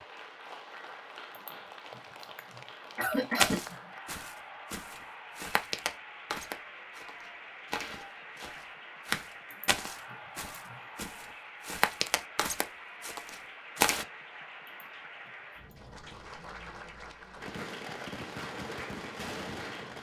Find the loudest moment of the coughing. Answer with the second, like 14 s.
3 s.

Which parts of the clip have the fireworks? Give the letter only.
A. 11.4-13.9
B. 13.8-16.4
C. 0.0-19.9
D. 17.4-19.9
D.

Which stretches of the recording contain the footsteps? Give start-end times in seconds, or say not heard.
3.4-14.1.